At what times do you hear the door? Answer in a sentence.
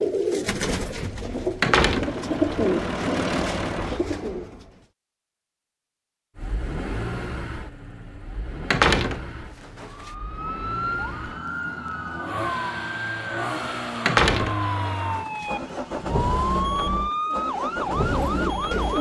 The door can be heard from 1.6 to 2.1 s, from 8.7 to 10.1 s and from 14.1 to 15.4 s.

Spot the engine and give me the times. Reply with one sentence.
The engine can be heard from 2.0 to 4.0 s and from 6.3 to 18.9 s.